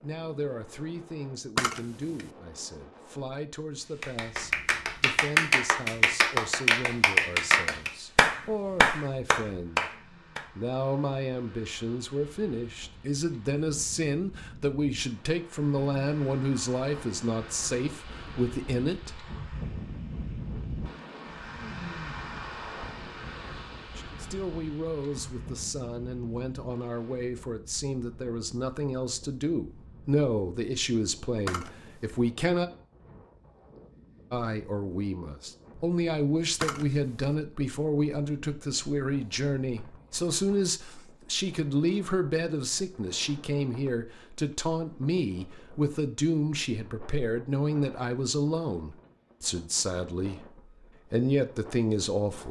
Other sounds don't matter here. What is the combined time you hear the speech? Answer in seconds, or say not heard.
45 s.